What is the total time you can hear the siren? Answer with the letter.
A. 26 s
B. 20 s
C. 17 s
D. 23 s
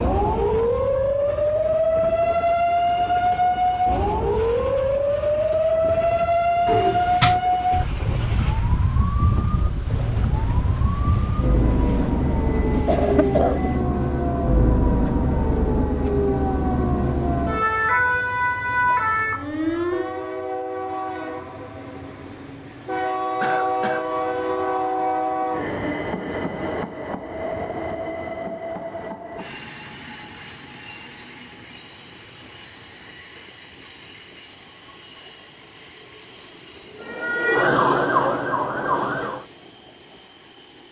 D.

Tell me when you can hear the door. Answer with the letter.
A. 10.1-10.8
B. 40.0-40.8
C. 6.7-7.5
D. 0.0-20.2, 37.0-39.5
C.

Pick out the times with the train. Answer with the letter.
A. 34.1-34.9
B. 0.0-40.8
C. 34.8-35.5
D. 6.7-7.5
B.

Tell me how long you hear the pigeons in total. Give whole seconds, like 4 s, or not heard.
not heard.